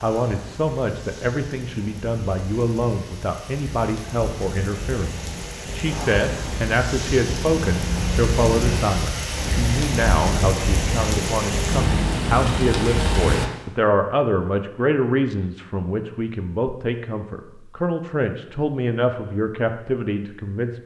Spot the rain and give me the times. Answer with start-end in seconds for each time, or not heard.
0.0-13.5.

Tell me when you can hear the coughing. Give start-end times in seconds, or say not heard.
not heard.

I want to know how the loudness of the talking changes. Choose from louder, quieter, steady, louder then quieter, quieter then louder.
steady.